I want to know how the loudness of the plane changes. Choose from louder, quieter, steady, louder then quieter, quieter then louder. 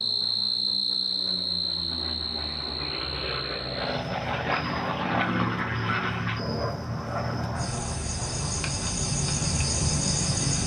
louder then quieter.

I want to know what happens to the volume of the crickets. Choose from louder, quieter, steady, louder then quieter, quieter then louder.
quieter then louder.